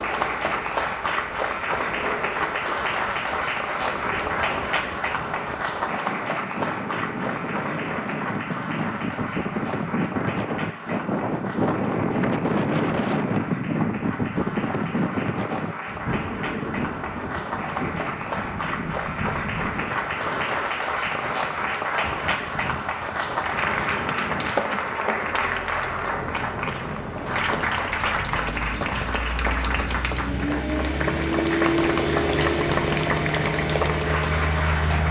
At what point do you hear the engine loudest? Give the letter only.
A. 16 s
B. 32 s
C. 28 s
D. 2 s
B.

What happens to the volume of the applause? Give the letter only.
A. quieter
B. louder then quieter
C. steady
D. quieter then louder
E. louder
D.